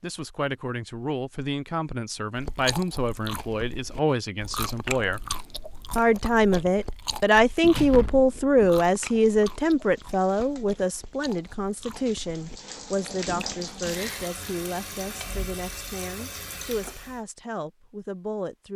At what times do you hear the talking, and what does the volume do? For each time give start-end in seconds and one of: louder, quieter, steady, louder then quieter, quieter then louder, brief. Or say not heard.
0.0-5.2 steady
6.0-18.7 quieter.